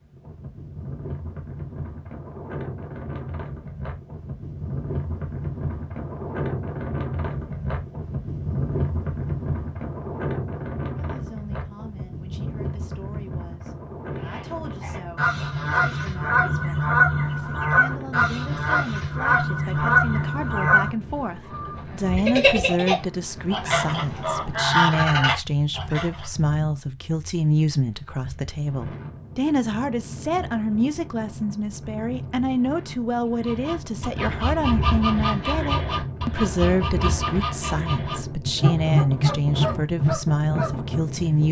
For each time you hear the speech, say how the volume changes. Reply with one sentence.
The speech can be heard from 10.9 to 41.4 s, getting louder.